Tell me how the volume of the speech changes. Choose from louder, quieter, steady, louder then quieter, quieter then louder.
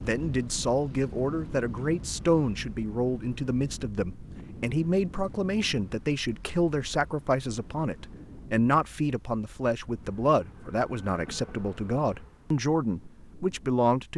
steady.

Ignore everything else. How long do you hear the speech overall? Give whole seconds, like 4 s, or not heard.
14 s.